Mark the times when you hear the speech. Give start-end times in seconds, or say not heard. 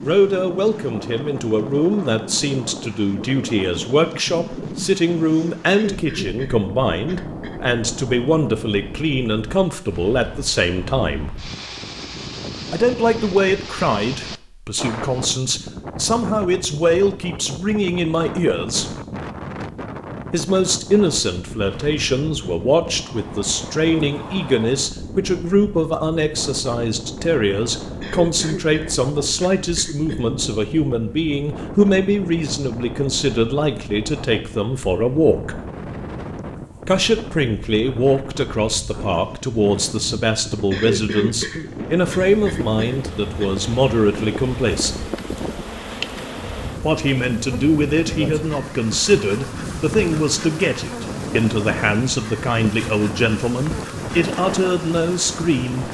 0.0-11.3, 12.7-18.9, 20.3-35.6, 36.9-45.0, 46.8-55.8.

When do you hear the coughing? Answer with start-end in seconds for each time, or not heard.
5.7-7.6, 28.0-30.3, 40.7-43.5.